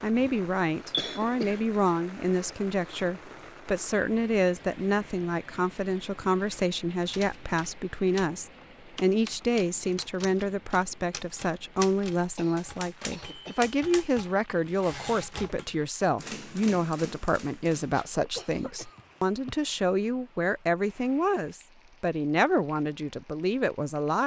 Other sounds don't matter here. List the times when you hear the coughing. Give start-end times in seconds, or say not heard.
0.9-1.6, 12.3-13.6, 17.8-19.7.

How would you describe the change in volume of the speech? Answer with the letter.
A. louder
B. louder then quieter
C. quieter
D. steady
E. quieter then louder
D.